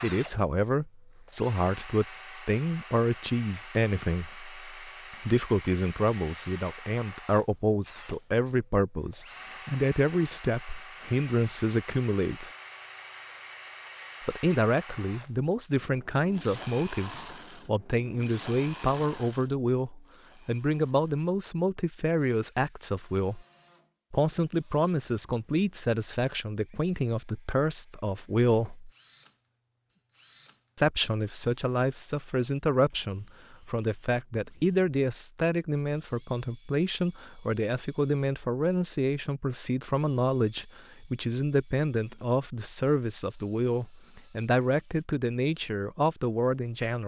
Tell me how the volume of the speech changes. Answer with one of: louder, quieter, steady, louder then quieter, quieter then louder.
steady.